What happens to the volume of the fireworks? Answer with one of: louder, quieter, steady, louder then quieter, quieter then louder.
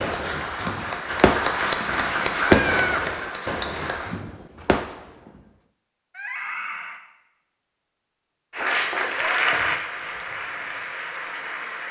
louder then quieter.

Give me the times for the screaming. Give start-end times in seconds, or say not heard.
2.5-3.0, 6.2-7.0.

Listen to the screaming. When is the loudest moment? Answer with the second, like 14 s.
3 s.